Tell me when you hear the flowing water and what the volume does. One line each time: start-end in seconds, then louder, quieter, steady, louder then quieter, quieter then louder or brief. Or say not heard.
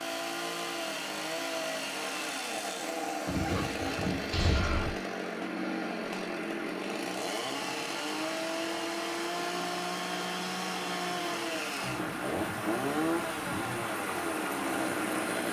0.0-15.4 louder.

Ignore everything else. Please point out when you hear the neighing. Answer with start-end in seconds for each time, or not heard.
3.2-5.0, 11.8-13.8.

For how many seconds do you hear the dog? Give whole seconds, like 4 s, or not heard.
not heard.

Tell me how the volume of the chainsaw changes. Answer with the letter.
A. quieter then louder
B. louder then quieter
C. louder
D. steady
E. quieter
D.